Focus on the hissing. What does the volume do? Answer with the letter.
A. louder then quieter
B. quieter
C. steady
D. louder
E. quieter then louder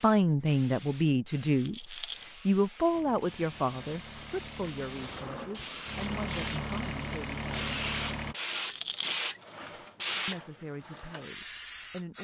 D.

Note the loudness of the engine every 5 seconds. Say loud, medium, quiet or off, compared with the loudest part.
medium, loud, off.